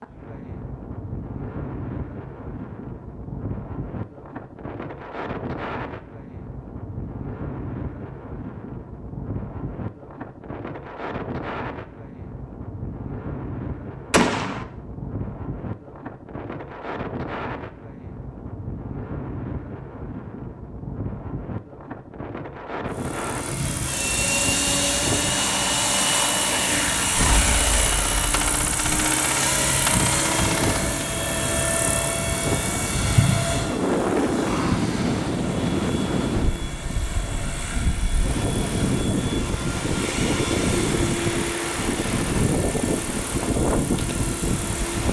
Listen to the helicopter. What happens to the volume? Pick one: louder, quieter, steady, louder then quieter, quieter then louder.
quieter.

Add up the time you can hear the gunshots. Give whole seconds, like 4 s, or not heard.
4 s.